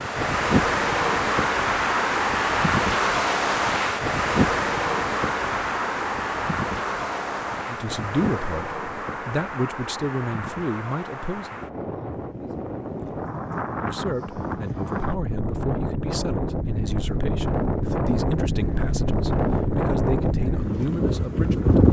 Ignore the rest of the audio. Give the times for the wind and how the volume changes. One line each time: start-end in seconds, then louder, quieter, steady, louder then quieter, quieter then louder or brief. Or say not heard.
0.0-21.8 quieter then louder.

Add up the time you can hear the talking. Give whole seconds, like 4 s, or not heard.
12 s.